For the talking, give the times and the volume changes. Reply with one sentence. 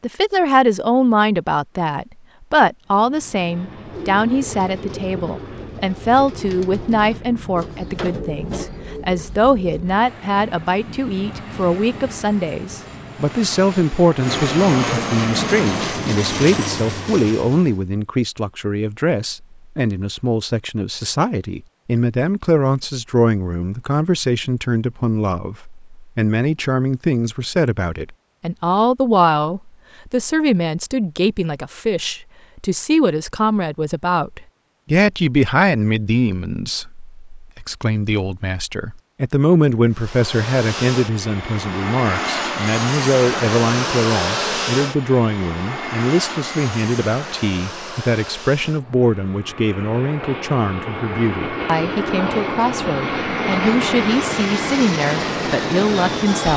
You can hear the talking from 0.0 to 56.5 s, at a steady volume.